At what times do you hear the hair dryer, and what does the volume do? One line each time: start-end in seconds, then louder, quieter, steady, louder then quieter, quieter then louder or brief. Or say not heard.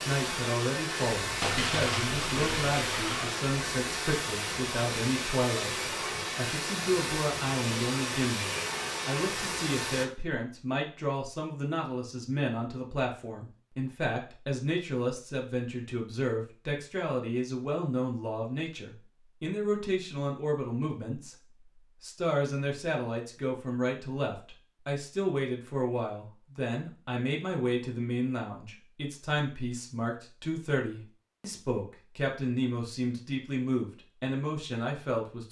0.0-10.1 steady.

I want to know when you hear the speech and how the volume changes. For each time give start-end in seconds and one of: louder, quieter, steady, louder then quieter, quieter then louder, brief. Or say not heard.
0.1-35.4 steady.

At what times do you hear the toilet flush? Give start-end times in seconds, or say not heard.
1.4-3.5.